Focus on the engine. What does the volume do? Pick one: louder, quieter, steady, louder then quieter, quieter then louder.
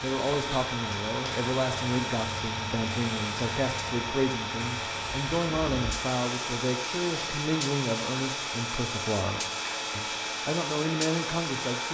steady.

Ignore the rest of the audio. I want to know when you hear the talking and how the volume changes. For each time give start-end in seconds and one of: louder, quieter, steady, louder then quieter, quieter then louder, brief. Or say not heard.
0.0-11.9 steady.